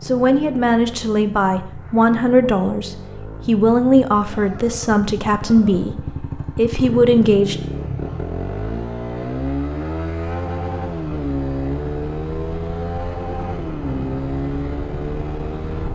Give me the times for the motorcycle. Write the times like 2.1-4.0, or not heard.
0.0-15.8.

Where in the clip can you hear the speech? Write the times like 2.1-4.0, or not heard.
0.0-7.5.